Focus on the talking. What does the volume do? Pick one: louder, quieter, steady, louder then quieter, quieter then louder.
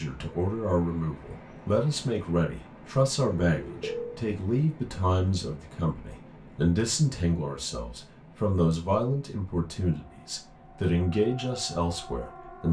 steady.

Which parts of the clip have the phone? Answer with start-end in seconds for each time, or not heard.
3.2-4.2.